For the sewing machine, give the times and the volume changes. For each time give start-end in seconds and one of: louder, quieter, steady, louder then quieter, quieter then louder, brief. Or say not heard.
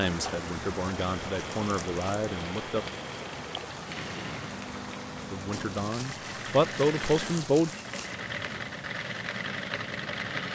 0.1-10.5 louder.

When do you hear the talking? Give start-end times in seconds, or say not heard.
0.0-2.9, 5.3-7.7.